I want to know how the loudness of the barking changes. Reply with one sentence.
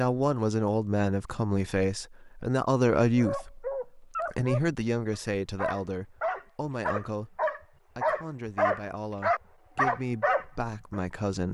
The loudness of the barking goes up.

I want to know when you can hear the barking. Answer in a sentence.
The barking can be heard from 3.1 to 11.0 s.